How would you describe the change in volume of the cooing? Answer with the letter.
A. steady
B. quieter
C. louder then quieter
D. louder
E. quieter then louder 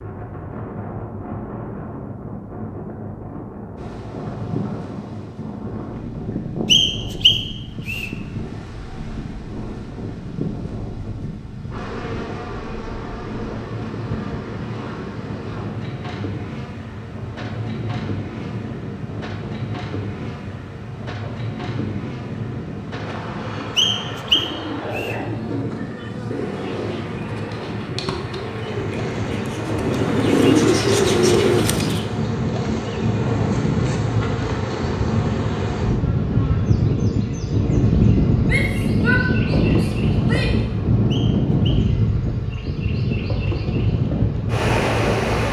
D.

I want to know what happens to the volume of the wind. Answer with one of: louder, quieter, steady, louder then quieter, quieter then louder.
louder.